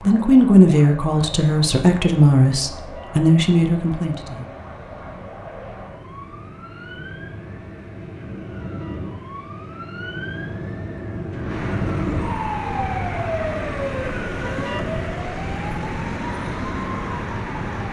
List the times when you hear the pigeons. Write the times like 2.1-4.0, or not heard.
not heard.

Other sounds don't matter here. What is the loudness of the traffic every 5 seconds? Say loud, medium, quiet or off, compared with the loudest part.
quiet, quiet, loud, loud.